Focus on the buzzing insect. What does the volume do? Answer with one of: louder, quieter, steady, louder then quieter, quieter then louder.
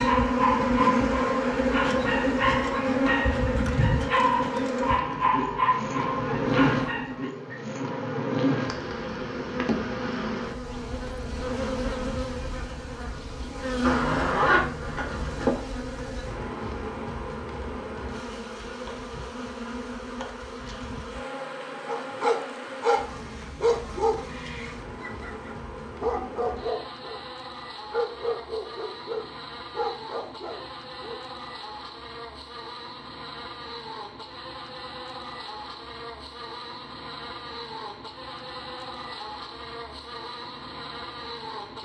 quieter.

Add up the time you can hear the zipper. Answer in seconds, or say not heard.
2 s.